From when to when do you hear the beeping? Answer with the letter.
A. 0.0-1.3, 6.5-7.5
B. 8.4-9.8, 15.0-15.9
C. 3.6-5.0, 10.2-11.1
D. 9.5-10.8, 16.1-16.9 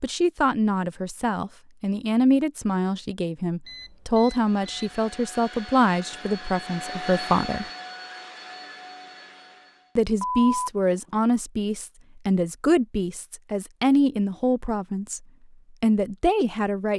C.